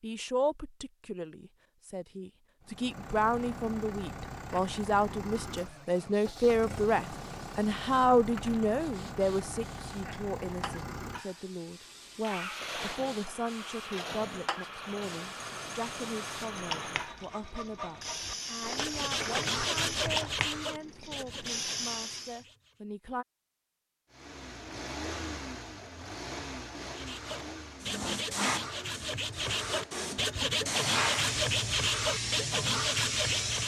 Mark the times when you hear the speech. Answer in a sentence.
The speech can be heard from 0.0 to 23.2 s.